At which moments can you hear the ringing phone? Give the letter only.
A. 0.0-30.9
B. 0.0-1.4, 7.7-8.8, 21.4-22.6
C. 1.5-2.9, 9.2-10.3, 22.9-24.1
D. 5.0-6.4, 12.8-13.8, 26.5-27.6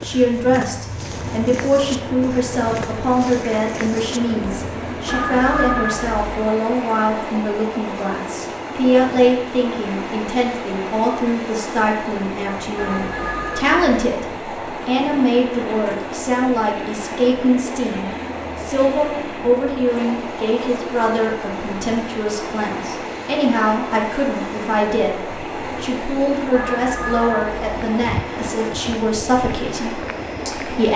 D.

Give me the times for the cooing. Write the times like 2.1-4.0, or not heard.
not heard.